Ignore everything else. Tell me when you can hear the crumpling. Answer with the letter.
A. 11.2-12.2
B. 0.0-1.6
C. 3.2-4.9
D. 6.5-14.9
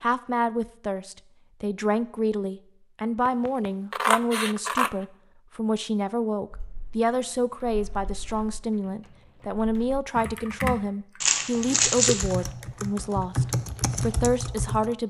A.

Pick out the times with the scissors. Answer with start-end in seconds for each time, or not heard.
3.2-4.9.